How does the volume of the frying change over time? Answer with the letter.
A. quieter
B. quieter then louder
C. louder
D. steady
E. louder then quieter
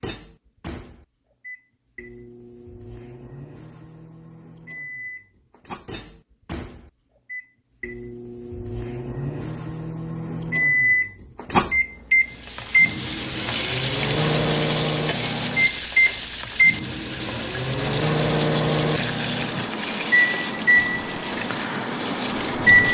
A.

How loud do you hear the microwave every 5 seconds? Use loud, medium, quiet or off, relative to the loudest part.
quiet, quiet, loud, loud, loud.